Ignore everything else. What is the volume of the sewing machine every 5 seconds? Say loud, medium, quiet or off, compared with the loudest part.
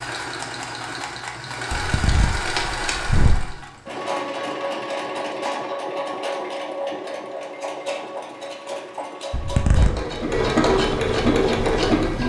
medium, medium, loud.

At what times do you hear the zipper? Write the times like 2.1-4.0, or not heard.
1.7-3.5, 9.3-9.9.